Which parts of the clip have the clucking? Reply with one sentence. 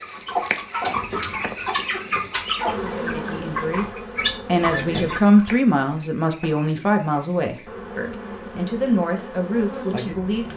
The clucking can be heard from 0.0 to 5.5 s.